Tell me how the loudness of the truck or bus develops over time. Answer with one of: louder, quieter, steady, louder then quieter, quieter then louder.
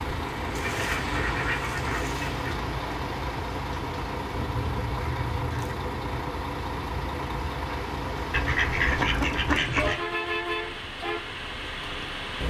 steady.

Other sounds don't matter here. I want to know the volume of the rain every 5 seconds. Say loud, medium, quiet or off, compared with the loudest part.
loud, loud, off.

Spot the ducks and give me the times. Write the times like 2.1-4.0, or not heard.
0.6-2.5, 4.5-5.8, 8.3-10.0.